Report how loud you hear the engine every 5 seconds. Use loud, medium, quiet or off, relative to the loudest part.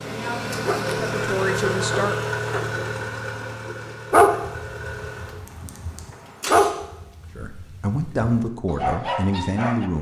loud, medium.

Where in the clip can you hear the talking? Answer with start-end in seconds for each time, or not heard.
0.0-2.2, 7.3-9.9.